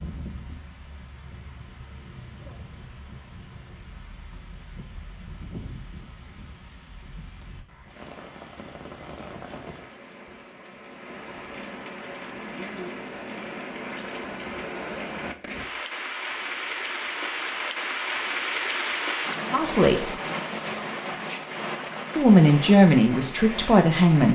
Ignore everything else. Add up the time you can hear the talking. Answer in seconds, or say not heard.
3 s.